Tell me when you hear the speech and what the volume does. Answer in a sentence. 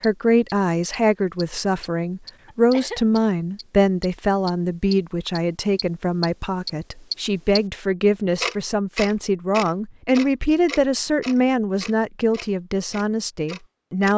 You can hear the speech from 0.0 to 14.1 s, at a steady volume.